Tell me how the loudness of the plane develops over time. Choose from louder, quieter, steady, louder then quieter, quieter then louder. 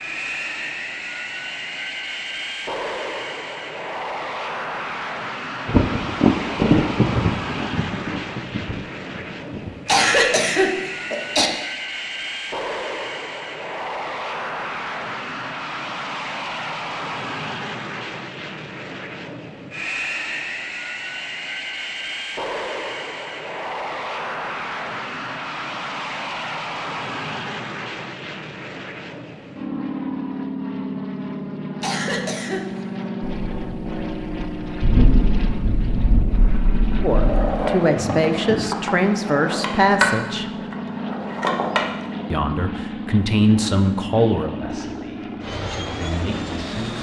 steady.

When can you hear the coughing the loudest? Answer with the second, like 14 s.
10 s.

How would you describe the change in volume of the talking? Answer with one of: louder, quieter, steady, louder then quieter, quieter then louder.
quieter.